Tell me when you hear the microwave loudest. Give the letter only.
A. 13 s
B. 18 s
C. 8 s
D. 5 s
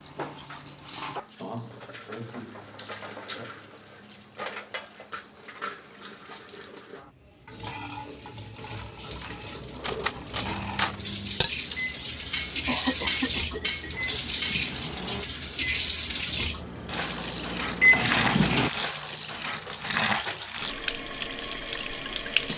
B.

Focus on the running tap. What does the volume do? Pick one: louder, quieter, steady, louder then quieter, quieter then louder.
louder.